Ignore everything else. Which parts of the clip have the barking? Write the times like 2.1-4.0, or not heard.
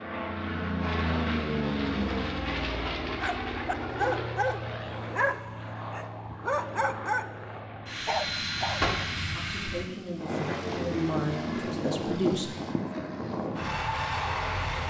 3.2-8.8.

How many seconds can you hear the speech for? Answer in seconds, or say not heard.
3 s.